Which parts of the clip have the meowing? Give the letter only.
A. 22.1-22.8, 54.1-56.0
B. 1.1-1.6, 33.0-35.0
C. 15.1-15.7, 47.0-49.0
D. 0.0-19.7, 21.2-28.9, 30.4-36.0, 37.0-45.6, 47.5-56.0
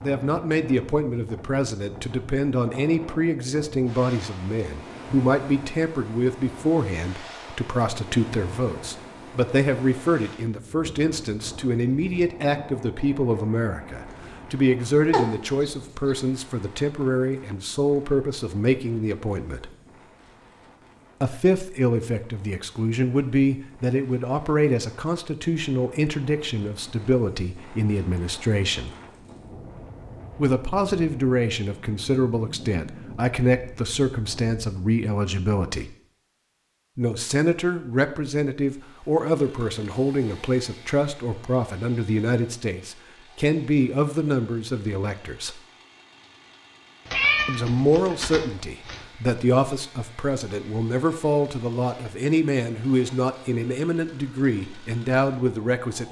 C.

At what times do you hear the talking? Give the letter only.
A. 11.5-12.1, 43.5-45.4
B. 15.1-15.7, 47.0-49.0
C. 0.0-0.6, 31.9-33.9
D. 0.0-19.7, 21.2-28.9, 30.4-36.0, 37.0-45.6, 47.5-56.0
D.